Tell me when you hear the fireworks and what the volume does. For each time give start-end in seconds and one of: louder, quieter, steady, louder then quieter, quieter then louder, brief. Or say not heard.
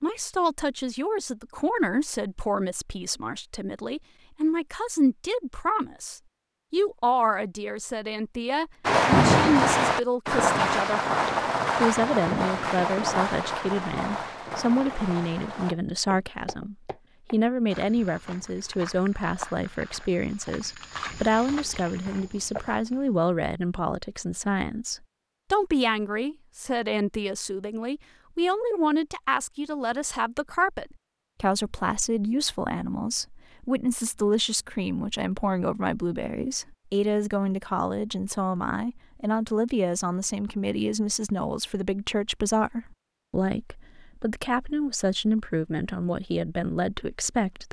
8.8-15.8 quieter.